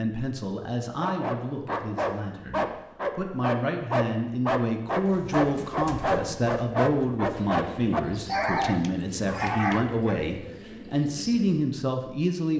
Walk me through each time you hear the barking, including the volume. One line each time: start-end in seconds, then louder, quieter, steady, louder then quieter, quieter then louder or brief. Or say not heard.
1.0-10.2 steady.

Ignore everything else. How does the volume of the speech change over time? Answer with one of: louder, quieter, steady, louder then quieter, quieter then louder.
louder.